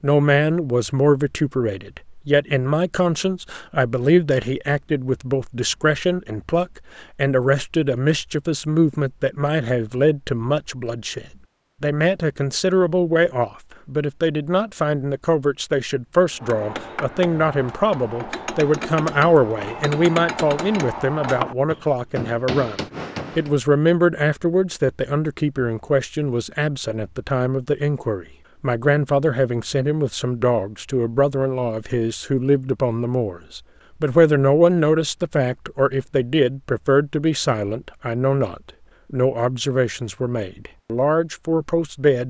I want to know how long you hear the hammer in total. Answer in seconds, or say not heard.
7 s.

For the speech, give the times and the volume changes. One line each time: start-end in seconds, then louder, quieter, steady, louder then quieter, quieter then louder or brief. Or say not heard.
0.0-42.2 steady.